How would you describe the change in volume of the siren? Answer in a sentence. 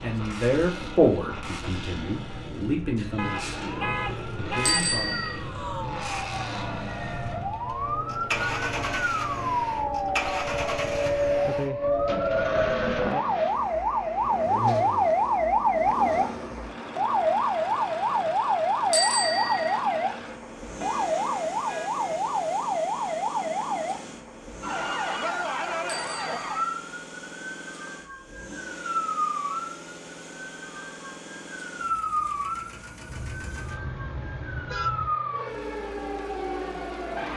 The loudness of the siren goes up, then down.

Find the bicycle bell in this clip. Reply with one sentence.
You can hear the bicycle bell from 4.7 to 5.3 s, from 18.9 to 19.8 s and from 25.9 to 26.7 s.